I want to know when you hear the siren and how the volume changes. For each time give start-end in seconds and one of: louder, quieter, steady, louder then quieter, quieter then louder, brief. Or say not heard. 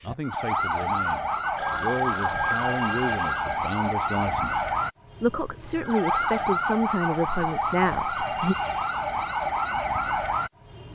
0.0-10.9 steady.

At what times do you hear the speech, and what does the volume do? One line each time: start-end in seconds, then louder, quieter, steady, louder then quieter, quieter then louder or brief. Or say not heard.
0.0-8.6 louder.